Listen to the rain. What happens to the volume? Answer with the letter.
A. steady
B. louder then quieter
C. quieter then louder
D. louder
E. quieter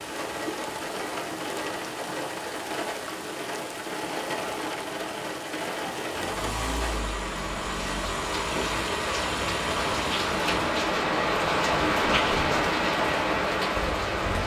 D.